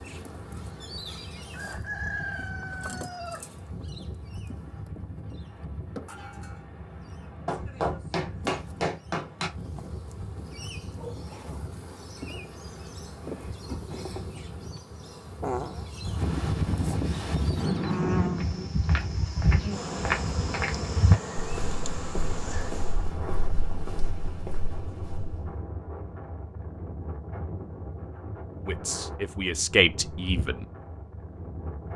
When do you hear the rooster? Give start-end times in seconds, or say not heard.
1.5-3.5.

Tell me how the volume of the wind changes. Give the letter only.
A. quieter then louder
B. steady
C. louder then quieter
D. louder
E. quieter
C.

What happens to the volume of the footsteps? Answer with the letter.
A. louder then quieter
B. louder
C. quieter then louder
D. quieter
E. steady
D.